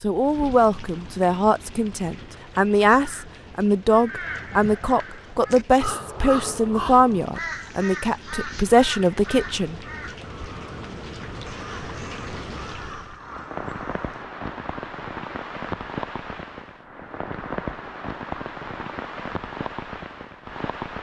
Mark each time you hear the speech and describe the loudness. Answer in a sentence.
You can hear the speech from 0.0 to 9.8 s, at a steady volume.